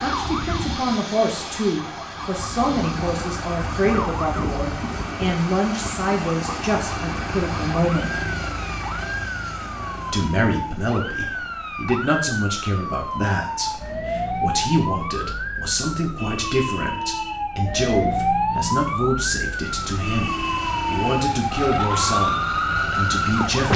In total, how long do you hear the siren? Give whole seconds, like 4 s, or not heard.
24 s.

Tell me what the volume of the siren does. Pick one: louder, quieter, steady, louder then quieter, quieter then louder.
louder.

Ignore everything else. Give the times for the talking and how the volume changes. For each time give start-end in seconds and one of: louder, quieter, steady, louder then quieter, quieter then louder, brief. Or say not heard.
0.0-8.2 steady
10.1-23.7 steady.